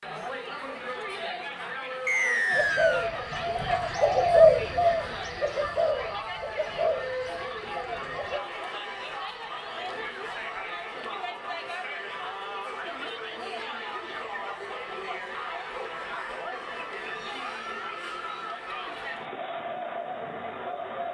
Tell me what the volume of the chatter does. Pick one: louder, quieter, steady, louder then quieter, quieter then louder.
steady.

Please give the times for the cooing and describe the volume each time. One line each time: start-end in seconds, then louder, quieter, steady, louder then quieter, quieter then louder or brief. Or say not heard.
2.5-8.4 louder then quieter.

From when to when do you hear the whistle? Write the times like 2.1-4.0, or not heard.
2.0-3.1.